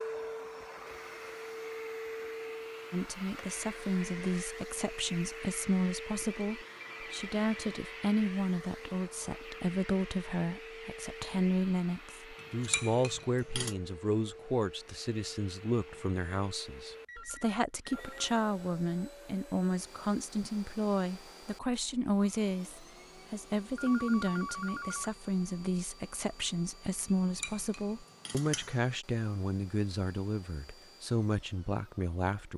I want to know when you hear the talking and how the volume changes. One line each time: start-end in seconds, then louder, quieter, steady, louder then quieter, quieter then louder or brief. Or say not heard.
2.9-32.5 steady.